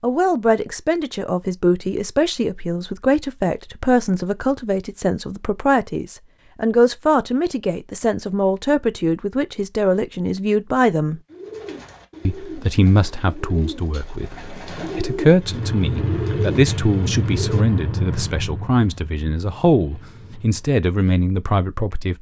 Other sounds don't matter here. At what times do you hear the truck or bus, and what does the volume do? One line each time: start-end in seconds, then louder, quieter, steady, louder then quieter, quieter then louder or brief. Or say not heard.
15.4-20.9 quieter.